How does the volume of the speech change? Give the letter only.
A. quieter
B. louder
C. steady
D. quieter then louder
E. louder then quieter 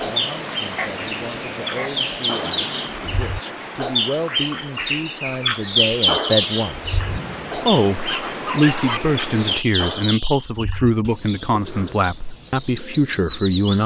B.